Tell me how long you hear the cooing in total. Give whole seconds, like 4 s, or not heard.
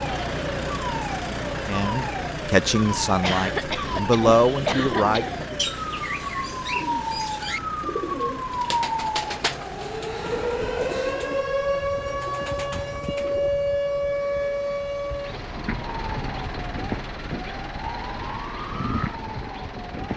10 s.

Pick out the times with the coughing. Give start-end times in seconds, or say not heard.
3.2-5.5.